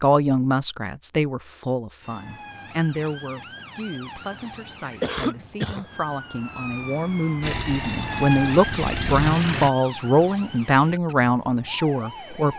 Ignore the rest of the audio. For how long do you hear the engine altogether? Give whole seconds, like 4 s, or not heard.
2 s.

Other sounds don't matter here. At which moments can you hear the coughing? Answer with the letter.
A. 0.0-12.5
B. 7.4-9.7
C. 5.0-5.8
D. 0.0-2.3
C.